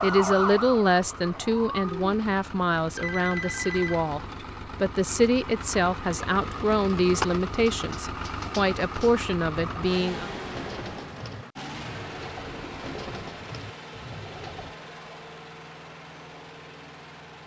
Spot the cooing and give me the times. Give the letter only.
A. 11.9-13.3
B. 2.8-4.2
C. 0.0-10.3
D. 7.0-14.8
D.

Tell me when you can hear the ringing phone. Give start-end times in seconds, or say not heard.
2.8-4.2.